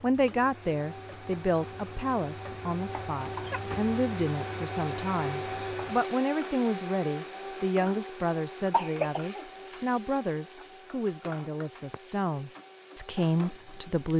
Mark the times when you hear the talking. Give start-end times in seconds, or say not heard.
0.0-14.1.